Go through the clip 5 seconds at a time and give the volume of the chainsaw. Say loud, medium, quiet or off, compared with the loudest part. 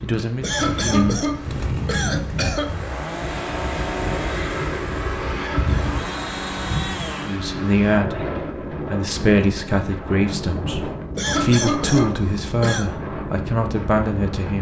loud, loud, off.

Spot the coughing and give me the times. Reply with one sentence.
You can hear the coughing from 0.4 to 2.7 s, from 5.3 to 6.0 s and from 11.2 to 12.9 s.